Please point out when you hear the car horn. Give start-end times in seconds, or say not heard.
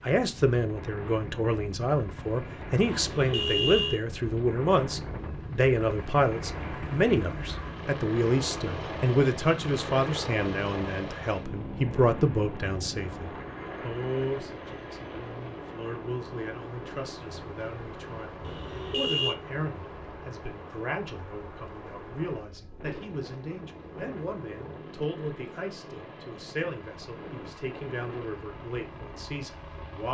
2.9-4.0, 18.4-19.4.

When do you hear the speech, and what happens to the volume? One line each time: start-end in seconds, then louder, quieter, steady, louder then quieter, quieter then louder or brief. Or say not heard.
0.0-30.0 quieter.